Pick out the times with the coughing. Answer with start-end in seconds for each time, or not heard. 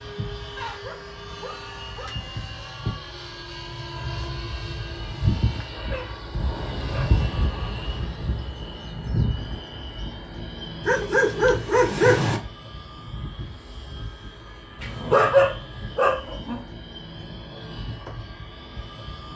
not heard.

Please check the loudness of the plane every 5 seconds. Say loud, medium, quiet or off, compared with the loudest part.
medium, loud, medium, medium.